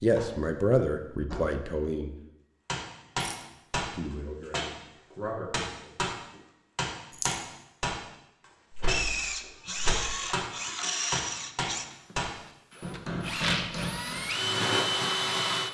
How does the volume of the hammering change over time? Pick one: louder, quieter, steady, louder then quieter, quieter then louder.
steady.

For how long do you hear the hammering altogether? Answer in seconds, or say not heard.
11 s.